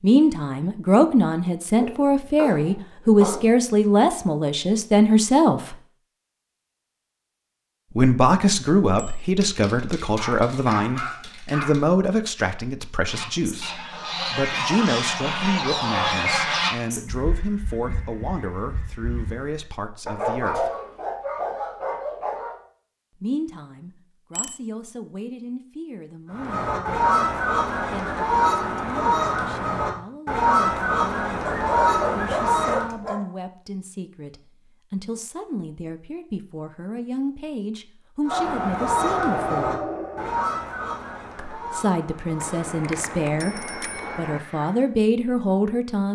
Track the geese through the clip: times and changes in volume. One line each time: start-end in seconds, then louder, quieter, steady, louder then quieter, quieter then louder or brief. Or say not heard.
13.1-19.6 louder then quieter
26.3-33.0 steady
38.2-44.9 quieter.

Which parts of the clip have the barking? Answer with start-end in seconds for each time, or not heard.
1.8-3.5, 9.4-11.8, 20.1-22.6, 31.4-33.2, 38.3-40.3.